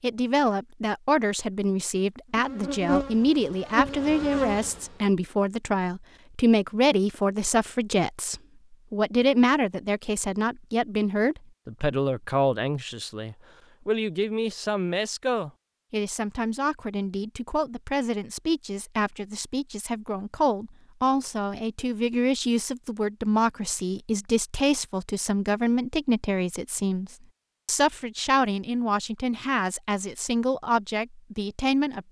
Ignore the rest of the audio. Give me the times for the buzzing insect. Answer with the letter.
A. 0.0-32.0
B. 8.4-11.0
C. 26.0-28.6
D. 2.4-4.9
D.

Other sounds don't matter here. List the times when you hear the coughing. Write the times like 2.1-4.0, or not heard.
not heard.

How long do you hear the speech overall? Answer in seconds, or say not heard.
32 s.